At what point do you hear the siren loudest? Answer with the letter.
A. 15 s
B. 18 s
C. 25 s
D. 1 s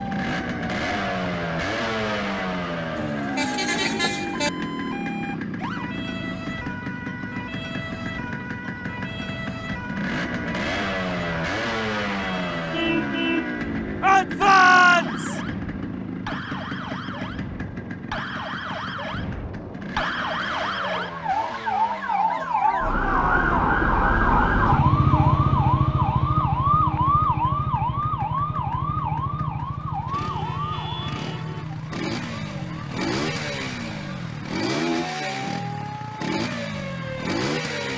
C.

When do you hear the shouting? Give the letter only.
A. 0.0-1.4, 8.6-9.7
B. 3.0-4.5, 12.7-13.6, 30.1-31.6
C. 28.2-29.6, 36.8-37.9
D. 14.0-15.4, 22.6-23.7
D.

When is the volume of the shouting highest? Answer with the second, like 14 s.
15 s.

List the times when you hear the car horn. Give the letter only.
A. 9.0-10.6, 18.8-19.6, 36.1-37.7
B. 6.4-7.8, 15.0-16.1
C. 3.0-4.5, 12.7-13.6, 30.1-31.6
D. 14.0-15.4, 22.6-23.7
C.